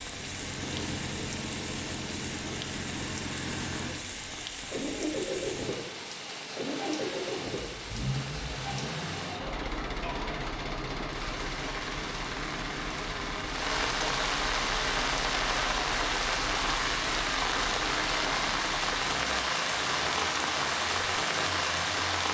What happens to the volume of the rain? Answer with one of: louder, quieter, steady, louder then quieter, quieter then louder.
louder.